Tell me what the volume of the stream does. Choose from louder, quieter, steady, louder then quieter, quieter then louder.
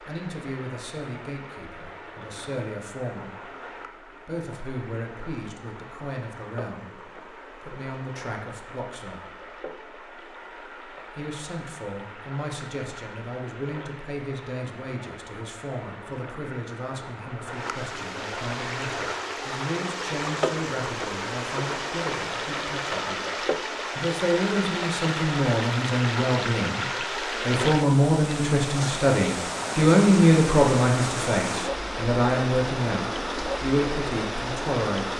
louder.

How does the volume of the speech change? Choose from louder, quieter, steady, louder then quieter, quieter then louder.
louder.